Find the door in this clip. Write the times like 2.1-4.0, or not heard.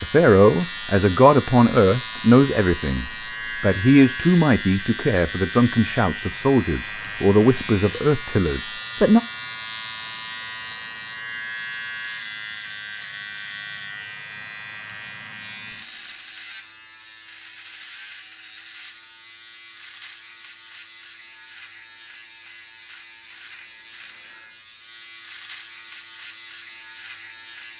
not heard.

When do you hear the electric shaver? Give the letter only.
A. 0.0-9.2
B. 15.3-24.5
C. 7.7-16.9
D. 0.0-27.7
D.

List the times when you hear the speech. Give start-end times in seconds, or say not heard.
0.0-9.2.